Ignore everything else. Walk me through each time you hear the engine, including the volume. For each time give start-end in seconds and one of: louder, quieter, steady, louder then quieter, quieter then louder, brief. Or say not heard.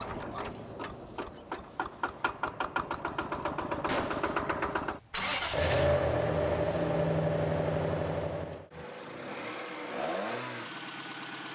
0.0-11.5 louder then quieter.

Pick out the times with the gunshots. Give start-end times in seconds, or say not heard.
3.9-4.3.